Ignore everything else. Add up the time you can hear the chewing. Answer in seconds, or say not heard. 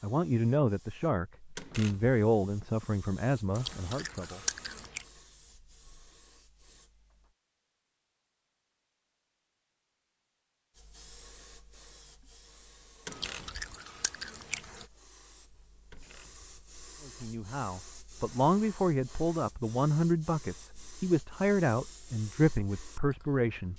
3 s.